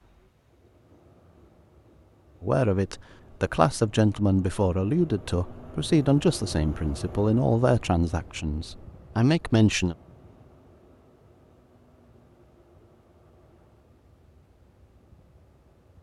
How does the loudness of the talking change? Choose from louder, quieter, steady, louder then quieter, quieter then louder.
steady.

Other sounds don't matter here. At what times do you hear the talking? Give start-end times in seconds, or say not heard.
2.4-9.9.